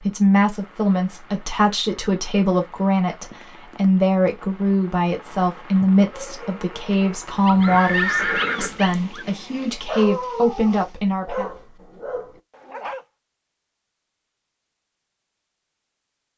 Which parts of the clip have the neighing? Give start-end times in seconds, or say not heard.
7.6-9.0.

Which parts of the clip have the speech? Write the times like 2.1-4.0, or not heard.
0.0-11.5.